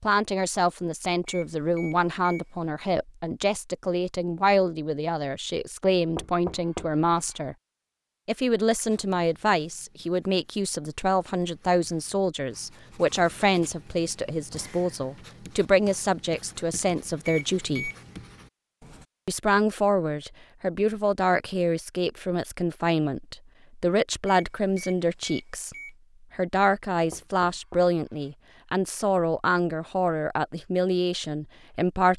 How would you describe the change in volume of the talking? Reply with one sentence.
The volume of the talking stays about the same.